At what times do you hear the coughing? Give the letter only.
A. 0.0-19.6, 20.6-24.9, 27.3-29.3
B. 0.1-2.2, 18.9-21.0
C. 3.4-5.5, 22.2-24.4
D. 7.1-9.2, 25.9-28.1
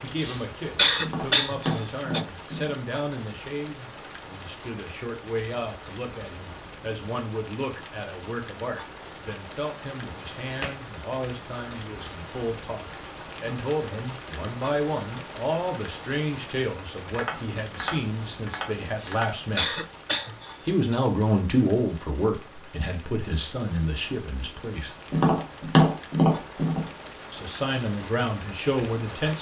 B.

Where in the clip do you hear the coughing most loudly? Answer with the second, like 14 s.
1 s.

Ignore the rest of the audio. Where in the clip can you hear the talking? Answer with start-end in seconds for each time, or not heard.
0.0-19.6, 20.6-24.9, 27.3-29.3.